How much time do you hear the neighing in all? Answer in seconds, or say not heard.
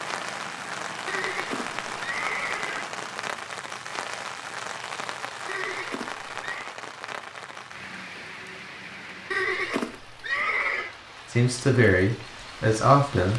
5 s.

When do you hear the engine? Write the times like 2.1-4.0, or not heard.
0.0-3.4.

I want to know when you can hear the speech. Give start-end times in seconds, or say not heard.
11.3-13.3.